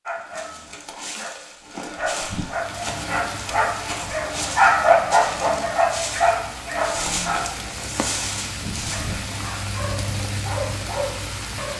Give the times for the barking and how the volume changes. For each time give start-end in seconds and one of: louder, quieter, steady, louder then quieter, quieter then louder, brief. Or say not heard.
0.1-11.7 louder then quieter.